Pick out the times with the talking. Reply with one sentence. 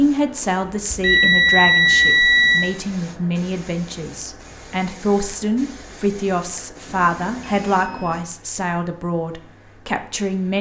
The talking can be heard from 0.0 to 10.5 s.